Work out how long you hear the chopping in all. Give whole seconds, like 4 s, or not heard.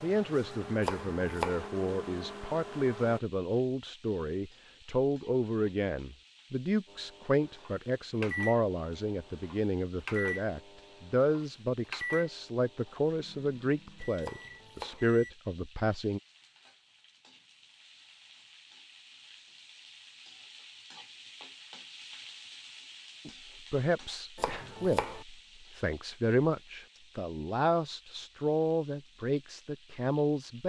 3 s.